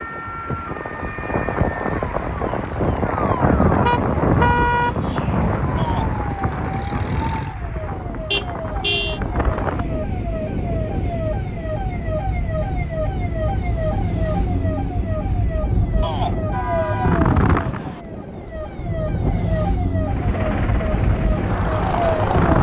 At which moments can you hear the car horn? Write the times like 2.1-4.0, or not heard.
3.9-5.0, 8.3-9.2, 16.5-18.1.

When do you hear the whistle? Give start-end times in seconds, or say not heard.
not heard.